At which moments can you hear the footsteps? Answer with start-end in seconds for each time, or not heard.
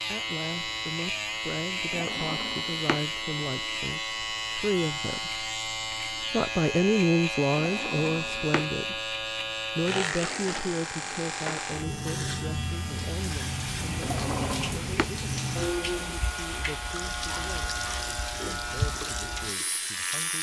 not heard.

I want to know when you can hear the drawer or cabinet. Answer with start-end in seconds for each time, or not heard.
1.8-3.0, 7.5-8.7, 13.8-15.1.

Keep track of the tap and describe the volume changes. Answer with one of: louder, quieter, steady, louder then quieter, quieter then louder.
steady.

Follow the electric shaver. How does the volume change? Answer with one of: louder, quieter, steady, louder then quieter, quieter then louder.
steady.